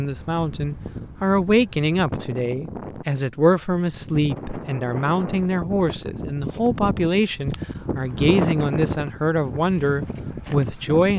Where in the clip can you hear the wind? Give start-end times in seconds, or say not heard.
0.0-11.1.